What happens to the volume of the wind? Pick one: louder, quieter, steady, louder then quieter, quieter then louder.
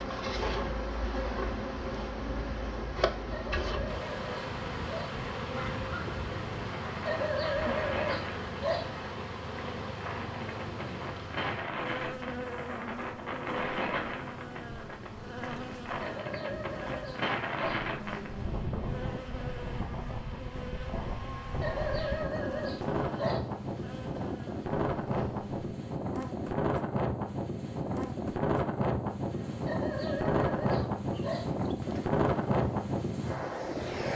louder.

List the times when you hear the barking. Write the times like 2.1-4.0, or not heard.
3.3-5.2, 7.0-8.9, 16.0-17.9, 21.6-23.5, 29.6-31.6.